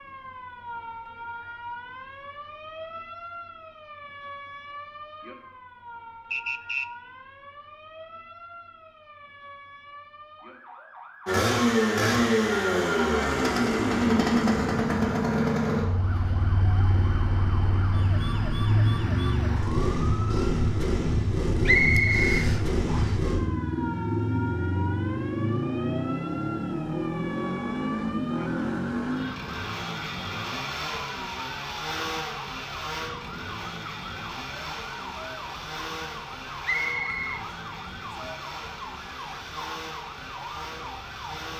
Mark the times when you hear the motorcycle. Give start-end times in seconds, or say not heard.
11.2-41.5.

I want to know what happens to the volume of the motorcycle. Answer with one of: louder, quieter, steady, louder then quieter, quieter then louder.
quieter.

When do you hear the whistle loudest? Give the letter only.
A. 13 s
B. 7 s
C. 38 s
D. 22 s
D.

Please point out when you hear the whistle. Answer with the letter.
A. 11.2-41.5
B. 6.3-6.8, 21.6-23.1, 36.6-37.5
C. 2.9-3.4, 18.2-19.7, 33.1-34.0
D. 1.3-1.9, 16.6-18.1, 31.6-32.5
B.